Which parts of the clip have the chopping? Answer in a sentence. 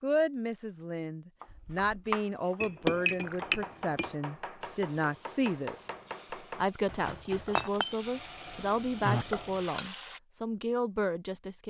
The chopping can be heard from 1.4 to 7.7 s.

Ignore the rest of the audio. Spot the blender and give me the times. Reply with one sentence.
The blender can't be heard in this clip.